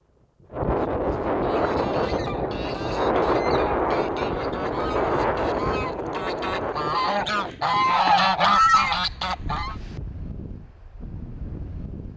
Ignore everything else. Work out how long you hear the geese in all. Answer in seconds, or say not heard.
8 s.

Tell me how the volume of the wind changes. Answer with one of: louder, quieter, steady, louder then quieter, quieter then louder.
quieter.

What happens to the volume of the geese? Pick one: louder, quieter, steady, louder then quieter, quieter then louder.
louder.